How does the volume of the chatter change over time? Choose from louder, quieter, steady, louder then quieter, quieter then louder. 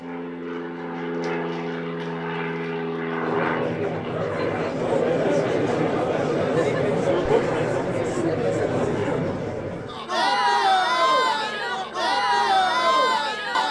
steady.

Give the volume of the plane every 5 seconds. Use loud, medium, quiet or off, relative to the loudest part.
loud, medium, medium.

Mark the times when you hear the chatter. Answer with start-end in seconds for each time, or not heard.
3.2-13.6.